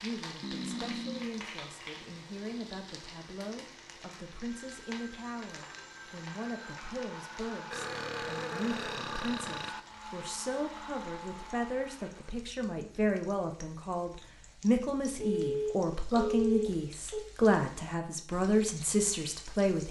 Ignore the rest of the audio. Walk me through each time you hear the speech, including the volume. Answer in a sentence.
You can hear the speech from 0.0 to 19.8 s, getting louder.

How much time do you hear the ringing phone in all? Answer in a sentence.
The ringing phone can be heard for 4 seconds in total.